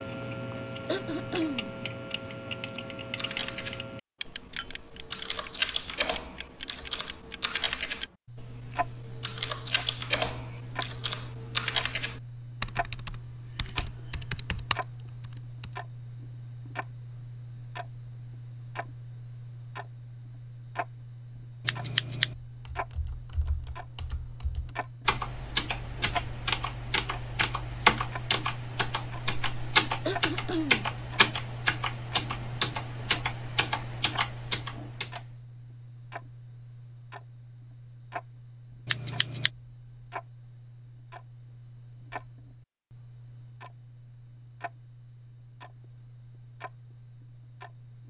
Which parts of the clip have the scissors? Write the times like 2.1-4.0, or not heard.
21.6-22.4, 38.9-39.5.